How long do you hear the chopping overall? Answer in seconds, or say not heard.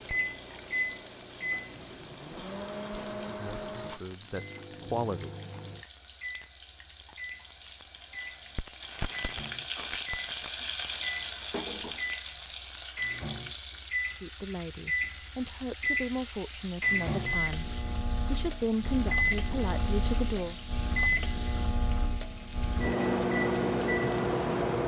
not heard.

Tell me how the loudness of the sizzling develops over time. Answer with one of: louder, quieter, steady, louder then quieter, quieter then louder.
louder then quieter.